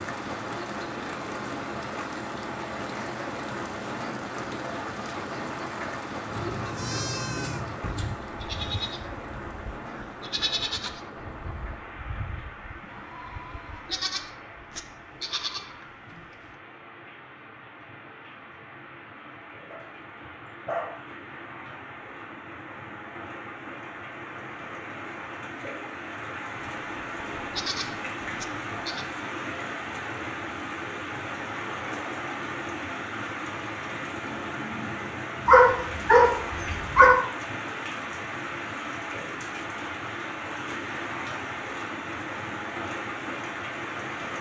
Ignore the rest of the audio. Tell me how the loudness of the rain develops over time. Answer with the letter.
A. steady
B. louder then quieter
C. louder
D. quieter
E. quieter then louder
E.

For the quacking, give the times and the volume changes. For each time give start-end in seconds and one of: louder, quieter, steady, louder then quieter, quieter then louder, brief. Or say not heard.
not heard.